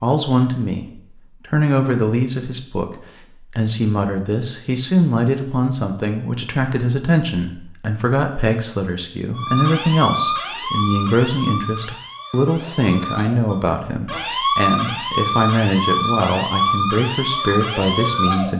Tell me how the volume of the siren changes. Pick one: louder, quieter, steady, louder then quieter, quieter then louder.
quieter then louder.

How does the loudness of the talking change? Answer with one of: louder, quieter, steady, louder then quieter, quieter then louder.
steady.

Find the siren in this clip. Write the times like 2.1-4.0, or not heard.
9.3-18.5.